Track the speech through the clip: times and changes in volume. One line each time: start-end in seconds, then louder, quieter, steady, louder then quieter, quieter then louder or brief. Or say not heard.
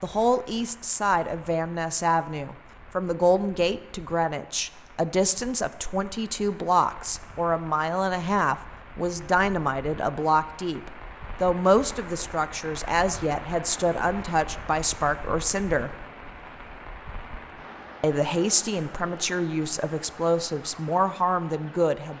0.0-15.9 steady
18.0-22.1 steady.